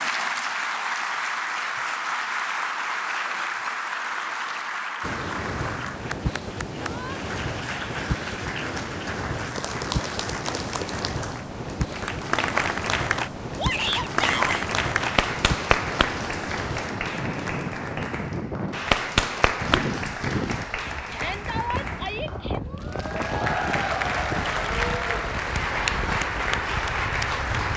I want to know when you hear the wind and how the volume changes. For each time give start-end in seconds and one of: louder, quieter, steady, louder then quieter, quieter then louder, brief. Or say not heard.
5.0-27.7 steady.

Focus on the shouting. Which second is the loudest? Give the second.
14 s.